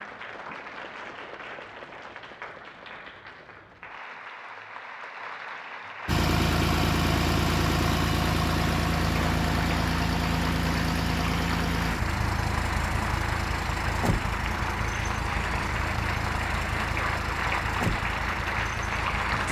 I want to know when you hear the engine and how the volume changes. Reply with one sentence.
You can hear the engine from 6.0 to 19.4 s, getting quieter.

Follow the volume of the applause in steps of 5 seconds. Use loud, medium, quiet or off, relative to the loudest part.
medium, medium, loud, loud.